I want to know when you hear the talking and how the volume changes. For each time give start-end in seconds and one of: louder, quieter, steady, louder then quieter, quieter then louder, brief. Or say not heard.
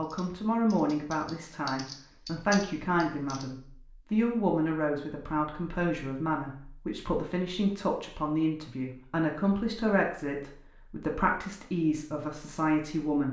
0.0-13.2 steady.